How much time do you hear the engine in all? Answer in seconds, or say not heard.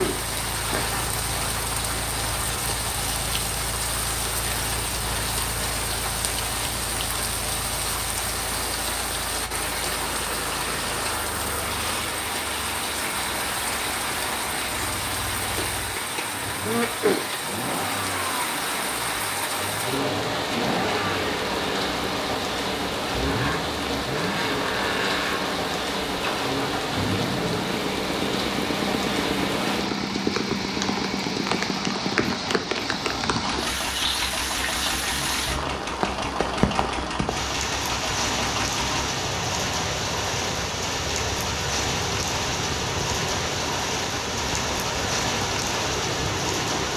47 s.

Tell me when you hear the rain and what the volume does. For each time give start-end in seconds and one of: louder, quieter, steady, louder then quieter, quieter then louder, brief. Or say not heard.
0.0-46.9 steady.